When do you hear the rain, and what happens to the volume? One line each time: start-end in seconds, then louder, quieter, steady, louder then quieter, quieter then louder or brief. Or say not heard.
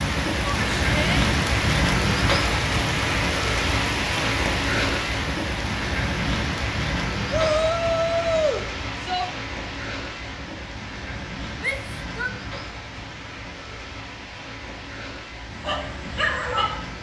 0.0-16.9 quieter.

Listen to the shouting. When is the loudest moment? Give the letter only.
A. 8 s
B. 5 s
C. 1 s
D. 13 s
A.